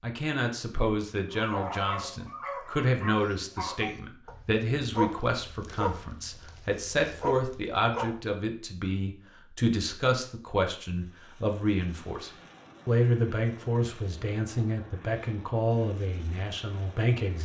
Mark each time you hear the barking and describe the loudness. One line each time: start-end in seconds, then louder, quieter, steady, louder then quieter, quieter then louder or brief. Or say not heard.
1.3-8.2 steady.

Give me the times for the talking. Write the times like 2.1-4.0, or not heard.
0.0-17.4.